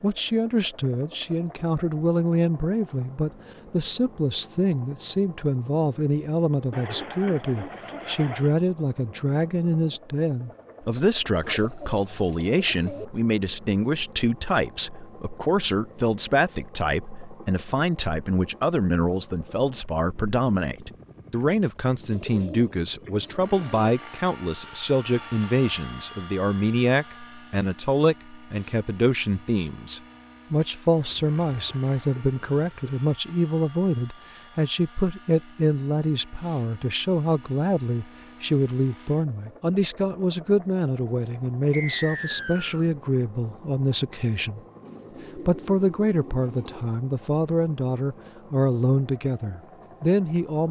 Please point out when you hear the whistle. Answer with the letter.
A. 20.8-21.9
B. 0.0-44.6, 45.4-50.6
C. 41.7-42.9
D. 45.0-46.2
C.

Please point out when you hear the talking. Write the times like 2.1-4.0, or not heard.
0.0-44.6, 45.4-50.6.